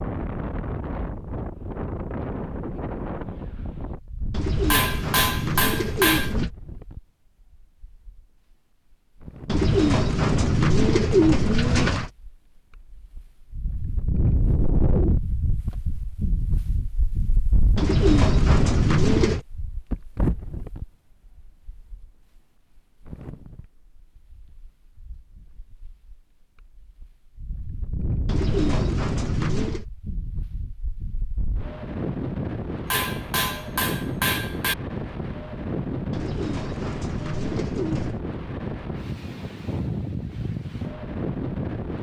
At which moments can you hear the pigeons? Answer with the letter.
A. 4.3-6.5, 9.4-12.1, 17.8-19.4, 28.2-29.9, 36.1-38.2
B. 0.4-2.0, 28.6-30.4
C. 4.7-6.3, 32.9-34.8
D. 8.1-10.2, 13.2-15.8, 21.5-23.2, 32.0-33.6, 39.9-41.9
A.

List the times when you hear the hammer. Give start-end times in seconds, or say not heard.
4.7-6.3, 32.9-34.8.